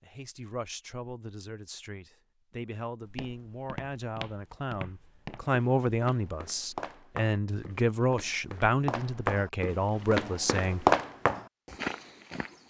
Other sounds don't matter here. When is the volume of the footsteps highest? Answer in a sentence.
The volume of the footsteps peaks at 11 seconds.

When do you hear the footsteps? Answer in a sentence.
You can hear the footsteps from 3.0 to 12.6 s.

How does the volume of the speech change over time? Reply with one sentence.
The loudness of the speech goes up.